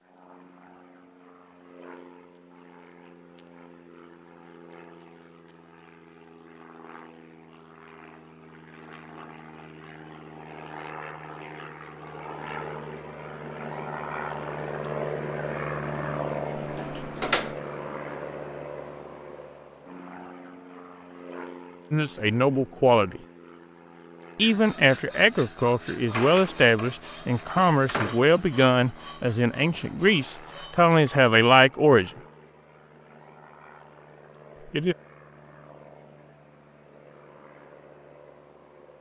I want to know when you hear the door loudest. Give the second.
17 s.